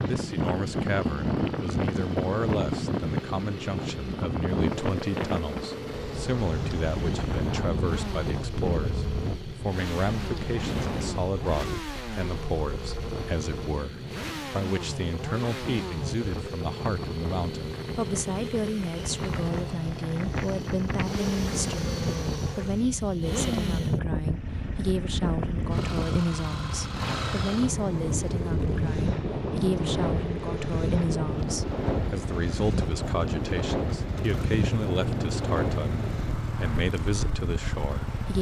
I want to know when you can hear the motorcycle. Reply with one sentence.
The motorcycle can be heard from 0.0 to 38.3 s.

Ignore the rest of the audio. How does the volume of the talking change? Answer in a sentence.
The loudness of the talking stays about the same.